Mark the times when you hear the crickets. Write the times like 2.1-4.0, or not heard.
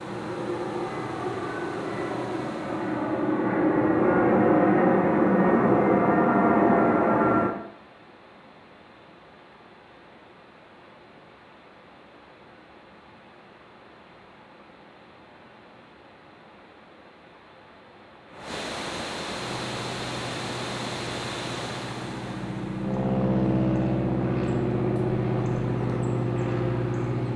not heard.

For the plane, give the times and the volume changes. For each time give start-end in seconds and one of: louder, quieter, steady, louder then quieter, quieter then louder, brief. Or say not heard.
0.0-7.5 louder
19.4-27.3 louder.